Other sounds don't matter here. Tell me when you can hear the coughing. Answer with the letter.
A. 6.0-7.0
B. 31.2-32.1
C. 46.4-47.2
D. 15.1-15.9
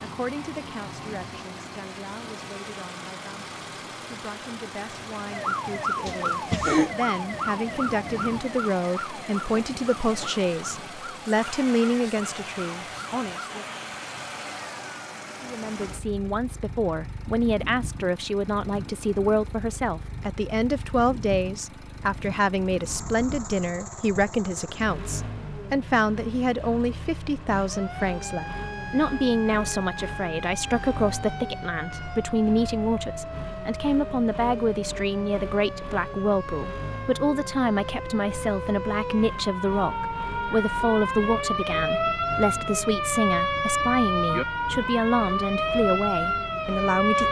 A.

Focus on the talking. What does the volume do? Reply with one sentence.
The loudness of the talking goes up.